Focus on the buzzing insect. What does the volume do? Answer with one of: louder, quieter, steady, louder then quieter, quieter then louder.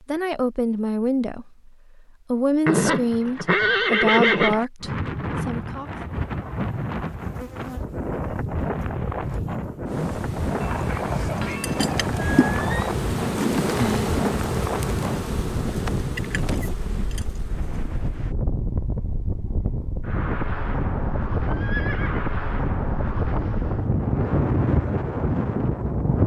louder then quieter.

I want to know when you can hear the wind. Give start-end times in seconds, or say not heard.
4.8-26.2.